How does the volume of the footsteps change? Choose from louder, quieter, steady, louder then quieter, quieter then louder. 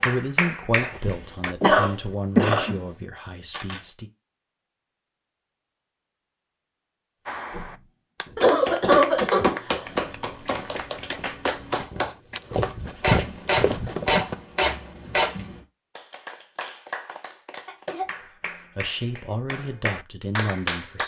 louder.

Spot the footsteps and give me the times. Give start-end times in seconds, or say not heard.
7.5-14.3.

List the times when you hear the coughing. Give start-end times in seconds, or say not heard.
0.8-2.8, 8.3-10.8, 17.6-18.4.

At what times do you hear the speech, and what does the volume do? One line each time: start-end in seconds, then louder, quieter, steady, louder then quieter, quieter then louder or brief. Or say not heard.
0.0-4.1 quieter
18.8-21.0 brief.